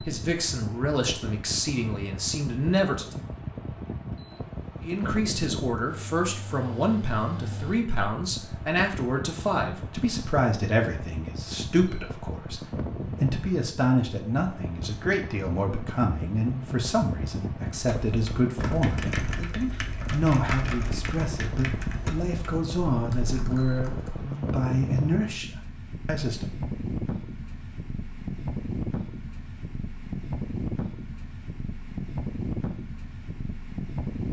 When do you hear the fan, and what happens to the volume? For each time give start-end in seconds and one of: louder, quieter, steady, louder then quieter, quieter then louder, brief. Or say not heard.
0.0-34.2 steady.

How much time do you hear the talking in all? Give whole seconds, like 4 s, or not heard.
25 s.